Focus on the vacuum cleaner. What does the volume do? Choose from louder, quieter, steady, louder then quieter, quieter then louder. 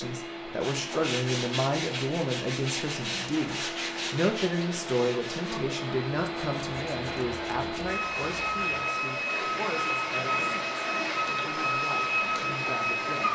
louder.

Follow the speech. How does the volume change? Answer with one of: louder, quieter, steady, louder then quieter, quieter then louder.
quieter.